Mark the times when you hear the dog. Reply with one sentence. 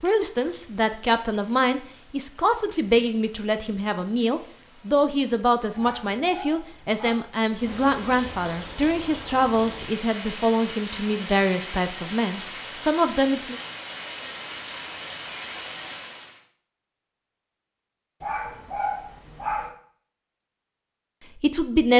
The dog can be heard from 5.8 to 7.2 s and from 18.2 to 19.7 s.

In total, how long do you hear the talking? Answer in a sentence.
You can hear the talking for 14 seconds altogether.